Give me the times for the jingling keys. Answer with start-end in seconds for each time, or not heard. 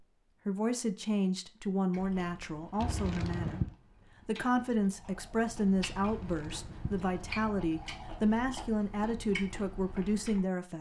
2.8-3.7, 6.0-7.5.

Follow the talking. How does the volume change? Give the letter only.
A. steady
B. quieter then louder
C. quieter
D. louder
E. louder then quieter
A.